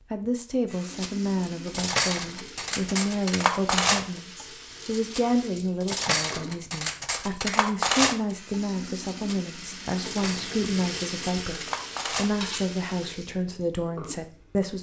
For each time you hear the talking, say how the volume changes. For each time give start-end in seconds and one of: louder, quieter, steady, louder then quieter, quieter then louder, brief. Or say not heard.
0.1-14.7 steady.